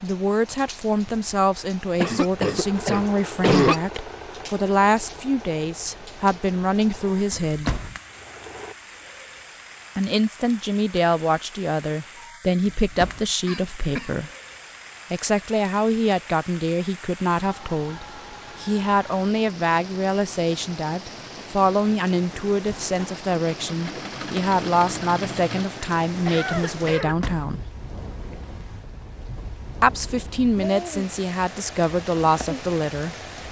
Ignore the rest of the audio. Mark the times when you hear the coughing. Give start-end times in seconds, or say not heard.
2.0-4.0, 13.4-14.2, 26.1-27.1.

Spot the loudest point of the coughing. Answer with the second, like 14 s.
4 s.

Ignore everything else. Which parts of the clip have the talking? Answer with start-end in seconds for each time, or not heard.
0.0-7.8, 9.9-14.3, 15.1-27.6, 29.8-33.1.